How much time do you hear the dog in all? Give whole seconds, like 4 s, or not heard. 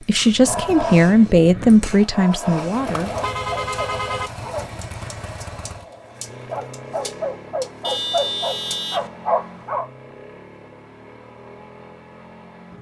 10 s.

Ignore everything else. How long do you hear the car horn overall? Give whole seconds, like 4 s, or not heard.
3 s.